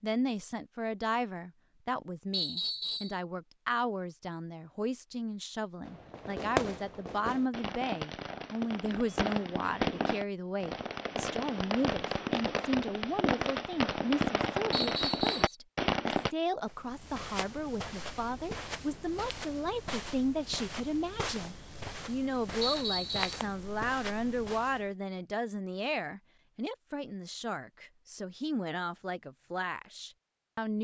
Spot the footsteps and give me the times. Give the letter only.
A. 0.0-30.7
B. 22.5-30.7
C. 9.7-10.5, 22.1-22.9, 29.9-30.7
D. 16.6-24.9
D.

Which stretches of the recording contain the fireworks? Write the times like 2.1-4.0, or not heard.
5.8-16.3.